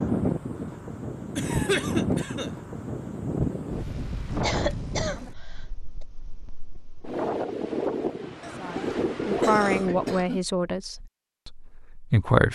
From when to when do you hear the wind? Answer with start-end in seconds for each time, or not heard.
0.0-10.2.